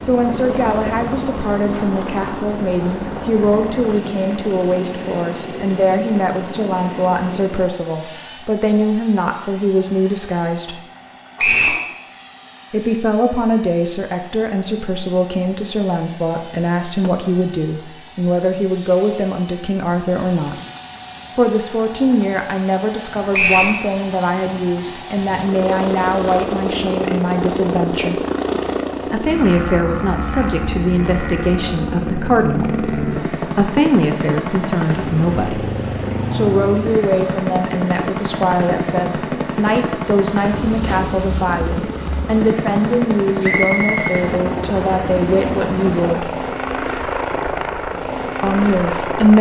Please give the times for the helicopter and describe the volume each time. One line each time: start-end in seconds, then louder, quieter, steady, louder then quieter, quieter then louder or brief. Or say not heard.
0.0-49.3 quieter then louder.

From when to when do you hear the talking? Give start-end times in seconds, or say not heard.
0.0-10.8, 12.7-20.6, 21.4-28.2, 29.1-35.7, 36.3-46.3, 48.4-49.3.